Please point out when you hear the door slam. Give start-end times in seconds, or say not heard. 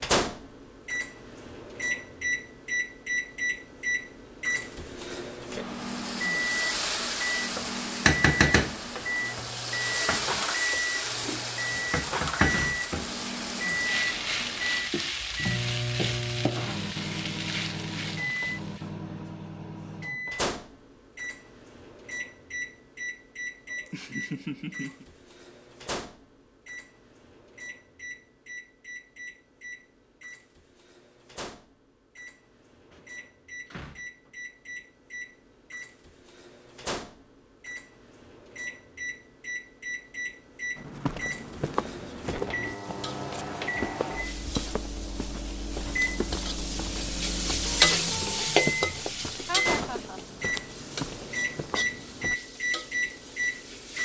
11.7-13.6, 32.9-34.4.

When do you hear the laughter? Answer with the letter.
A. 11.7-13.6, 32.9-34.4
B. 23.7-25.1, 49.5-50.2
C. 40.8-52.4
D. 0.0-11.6
B.